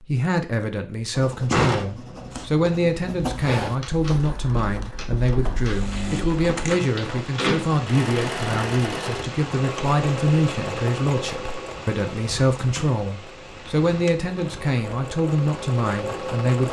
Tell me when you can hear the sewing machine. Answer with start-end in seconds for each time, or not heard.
5.6-16.6.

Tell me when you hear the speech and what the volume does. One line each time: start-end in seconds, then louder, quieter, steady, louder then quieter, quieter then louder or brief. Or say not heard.
0.0-16.6 steady.